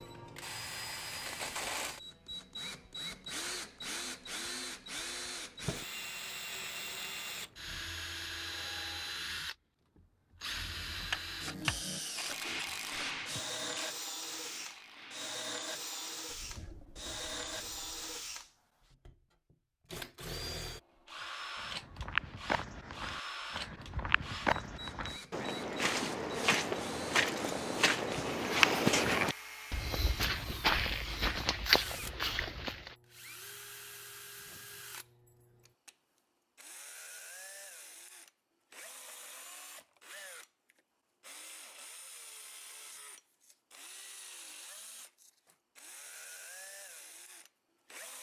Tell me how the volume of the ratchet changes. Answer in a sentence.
The loudness of the ratchet goes down.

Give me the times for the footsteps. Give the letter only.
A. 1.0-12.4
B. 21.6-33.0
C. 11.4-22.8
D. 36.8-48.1
B.